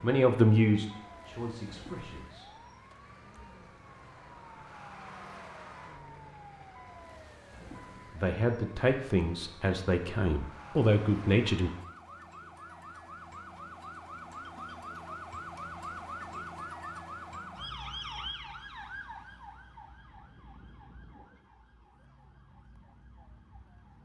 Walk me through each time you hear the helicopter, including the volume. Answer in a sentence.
You can't hear the helicopter here.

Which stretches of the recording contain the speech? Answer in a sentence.
The speech can be heard from 0.0 to 2.5 s and from 8.2 to 11.7 s.